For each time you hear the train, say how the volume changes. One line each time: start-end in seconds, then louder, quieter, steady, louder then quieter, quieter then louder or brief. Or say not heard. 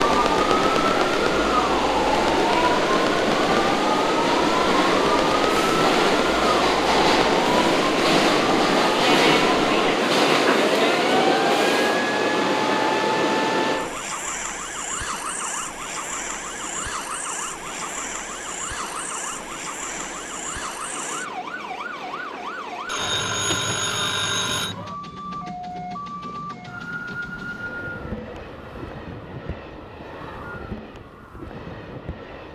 0.0-32.4 quieter.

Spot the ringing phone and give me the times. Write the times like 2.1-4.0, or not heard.
22.9-24.8.